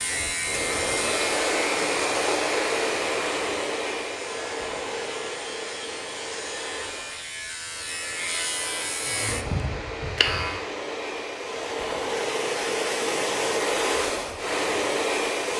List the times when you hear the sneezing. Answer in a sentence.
You can't hear the sneezing here.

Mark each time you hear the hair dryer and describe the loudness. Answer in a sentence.
You can hear the hair dryer from 0.0 to 15.5 s, getting quieter then louder.